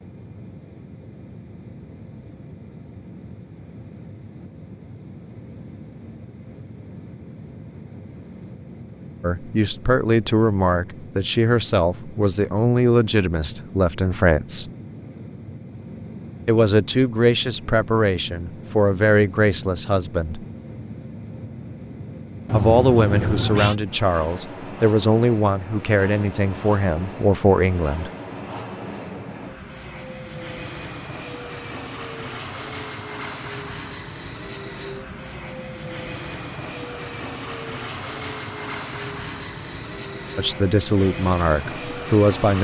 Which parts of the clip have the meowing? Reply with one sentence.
You can hear the meowing from 22.4 to 23.8 s.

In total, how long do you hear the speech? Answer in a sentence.
You can hear the speech for 17 seconds altogether.